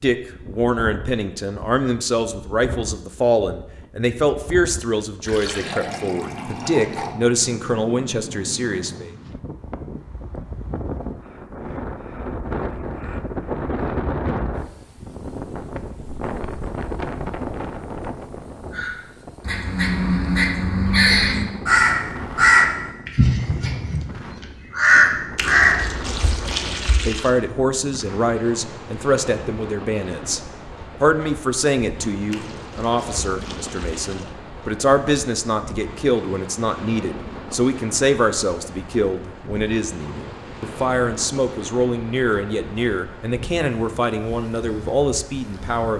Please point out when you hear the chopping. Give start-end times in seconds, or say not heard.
not heard.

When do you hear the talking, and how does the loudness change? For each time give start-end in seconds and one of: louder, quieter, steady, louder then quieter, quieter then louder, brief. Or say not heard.
0.0-9.1 steady
26.4-45.9 steady.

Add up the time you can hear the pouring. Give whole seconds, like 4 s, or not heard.
6 s.